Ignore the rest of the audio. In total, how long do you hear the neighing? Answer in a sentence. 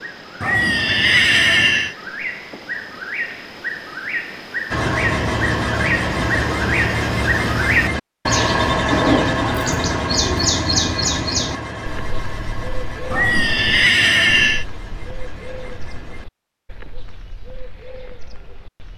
The neighing can be heard for 3 seconds in total.